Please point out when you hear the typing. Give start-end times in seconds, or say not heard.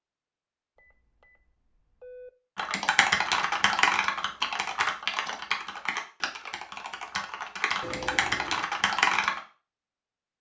2.5-9.4.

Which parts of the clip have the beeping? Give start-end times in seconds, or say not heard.
0.8-2.3, 7.8-8.7.